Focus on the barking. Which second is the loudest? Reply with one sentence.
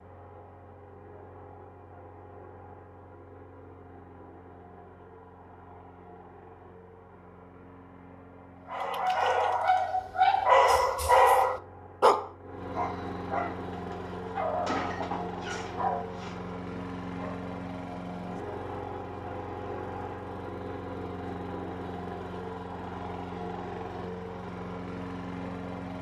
The volume of the barking peaks at 11 seconds.